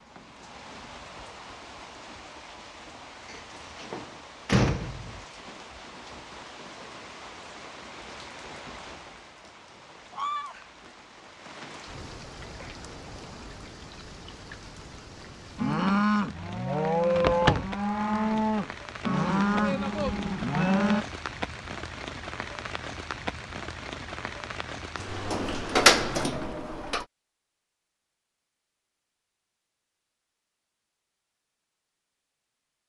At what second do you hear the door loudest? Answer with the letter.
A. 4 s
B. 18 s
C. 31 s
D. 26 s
D.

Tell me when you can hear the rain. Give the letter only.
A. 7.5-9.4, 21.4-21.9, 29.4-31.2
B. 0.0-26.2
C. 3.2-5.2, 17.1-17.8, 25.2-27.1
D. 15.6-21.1
B.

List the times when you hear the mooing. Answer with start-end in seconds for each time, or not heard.
15.6-21.1.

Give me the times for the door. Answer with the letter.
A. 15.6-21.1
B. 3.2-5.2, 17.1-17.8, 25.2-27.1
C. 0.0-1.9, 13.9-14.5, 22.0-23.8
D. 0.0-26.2
B.